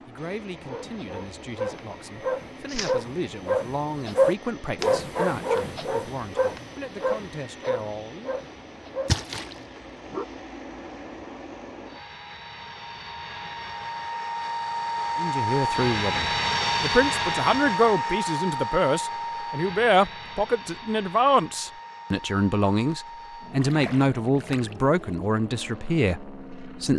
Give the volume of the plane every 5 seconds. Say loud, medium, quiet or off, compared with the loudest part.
quiet, quiet, medium, loud, quiet, quiet.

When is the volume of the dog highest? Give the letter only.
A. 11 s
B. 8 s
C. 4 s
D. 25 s
C.